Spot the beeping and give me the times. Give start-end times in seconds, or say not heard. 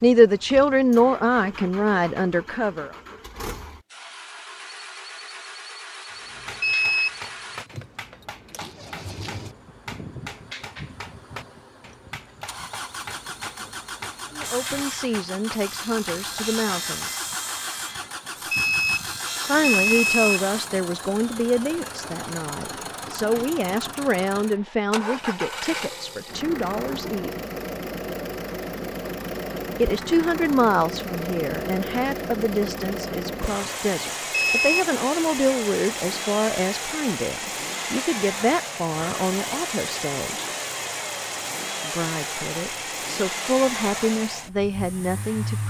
6.6-7.2, 18.5-20.4, 34.3-34.9.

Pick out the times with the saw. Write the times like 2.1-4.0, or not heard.
14.4-20.7.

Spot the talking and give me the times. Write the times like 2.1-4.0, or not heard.
0.0-2.9, 14.3-17.1, 19.4-27.3, 29.8-40.5, 41.8-45.6.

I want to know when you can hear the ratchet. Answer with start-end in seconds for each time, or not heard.
not heard.